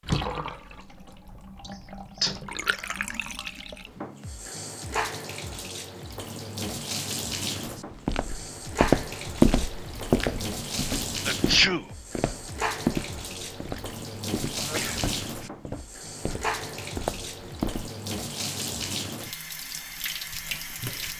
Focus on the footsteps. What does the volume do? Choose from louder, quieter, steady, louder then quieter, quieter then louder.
quieter.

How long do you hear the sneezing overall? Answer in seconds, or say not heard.
2 s.